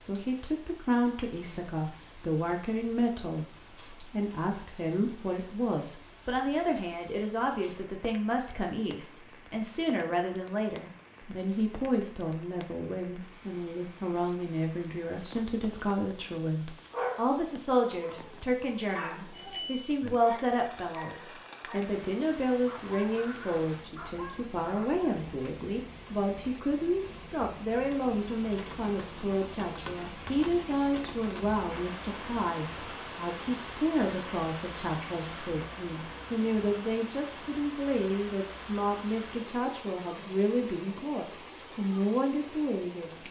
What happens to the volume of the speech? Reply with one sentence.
The loudness of the speech stays about the same.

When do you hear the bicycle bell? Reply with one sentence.
The bicycle bell can be heard from 19.3 to 19.9 s.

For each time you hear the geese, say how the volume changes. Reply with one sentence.
The geese can't be heard in this clip.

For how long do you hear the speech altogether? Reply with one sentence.
The speech can be heard for 43 seconds in total.